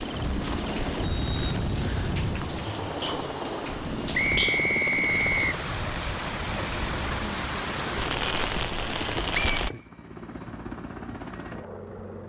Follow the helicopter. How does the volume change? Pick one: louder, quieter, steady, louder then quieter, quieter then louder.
quieter.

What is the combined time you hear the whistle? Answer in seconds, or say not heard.
4 s.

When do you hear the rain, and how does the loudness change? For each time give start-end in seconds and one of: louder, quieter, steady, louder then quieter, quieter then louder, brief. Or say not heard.
0.1-9.7 louder.